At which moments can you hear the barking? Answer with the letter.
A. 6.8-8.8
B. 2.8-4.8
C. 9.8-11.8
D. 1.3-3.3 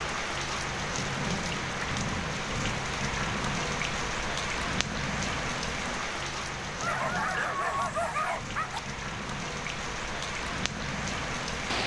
A.